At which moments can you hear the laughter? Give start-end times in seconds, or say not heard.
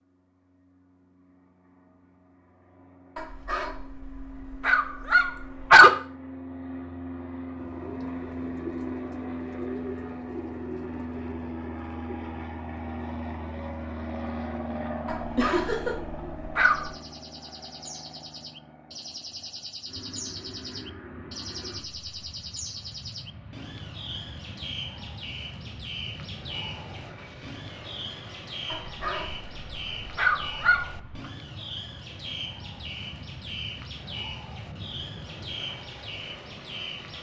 15.3-15.9.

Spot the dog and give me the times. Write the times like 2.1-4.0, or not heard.
3.1-5.9, 15.1-16.9, 28.7-31.2.